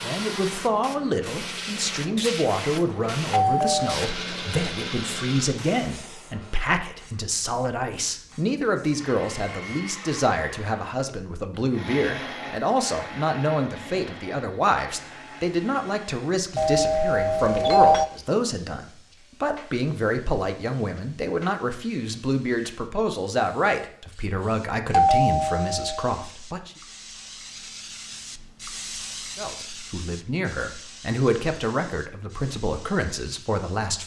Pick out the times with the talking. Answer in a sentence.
The talking can be heard from 0.0 to 26.8 s and from 29.4 to 34.0 s.